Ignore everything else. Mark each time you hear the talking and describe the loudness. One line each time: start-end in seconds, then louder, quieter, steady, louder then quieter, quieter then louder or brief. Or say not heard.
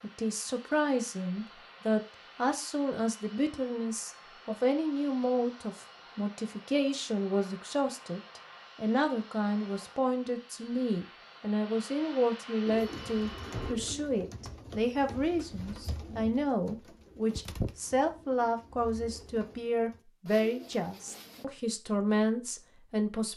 0.0-23.3 steady.